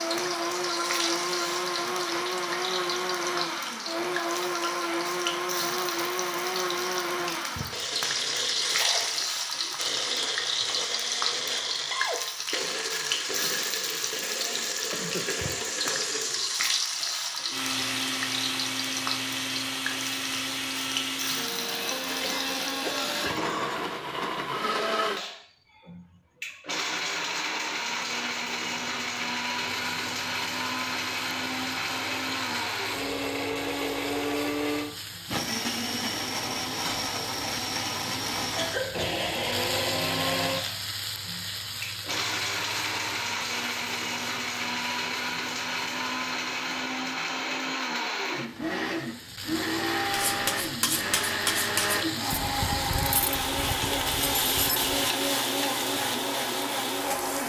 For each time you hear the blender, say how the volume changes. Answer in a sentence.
The blender can be heard from 0.0 to 57.4 s, at a steady volume.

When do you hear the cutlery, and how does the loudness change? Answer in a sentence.
You can hear the cutlery from 50.1 to 54.9 s, getting quieter.